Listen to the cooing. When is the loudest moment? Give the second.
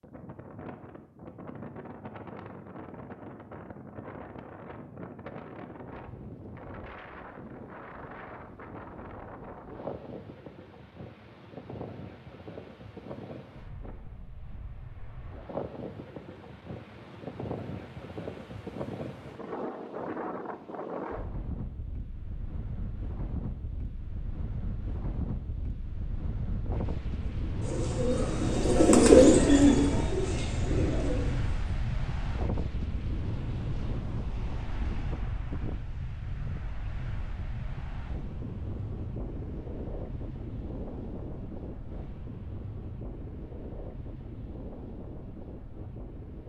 29 s.